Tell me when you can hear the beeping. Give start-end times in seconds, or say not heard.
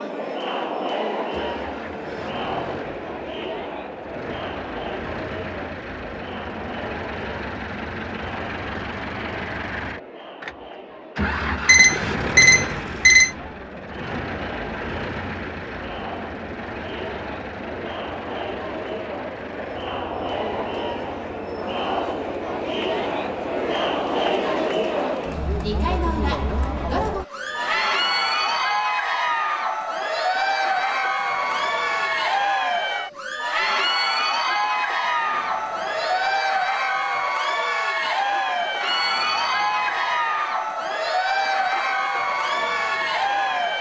11.7-13.3.